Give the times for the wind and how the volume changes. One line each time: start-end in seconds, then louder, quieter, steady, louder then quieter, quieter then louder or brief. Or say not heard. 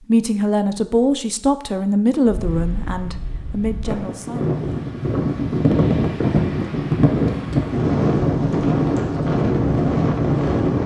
2.2-10.8 louder.